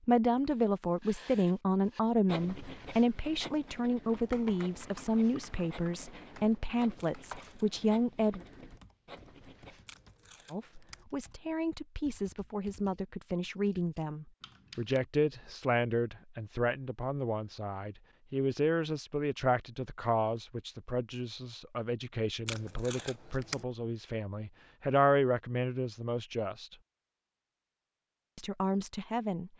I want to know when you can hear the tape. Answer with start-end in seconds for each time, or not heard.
7.0-7.8, 9.8-11.1, 22.4-23.6.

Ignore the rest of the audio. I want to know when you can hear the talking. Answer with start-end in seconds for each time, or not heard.
0.1-8.4, 10.5-26.8, 28.4-29.5.